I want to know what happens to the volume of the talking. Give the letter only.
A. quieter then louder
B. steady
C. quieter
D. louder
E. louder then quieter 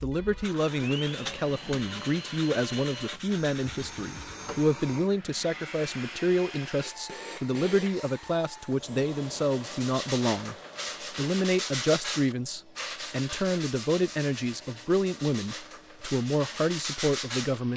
B.